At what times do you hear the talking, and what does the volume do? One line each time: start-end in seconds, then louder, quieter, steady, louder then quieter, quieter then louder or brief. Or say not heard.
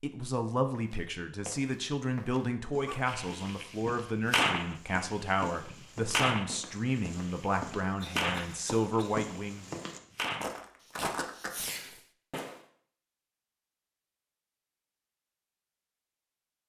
0.0-9.7 steady.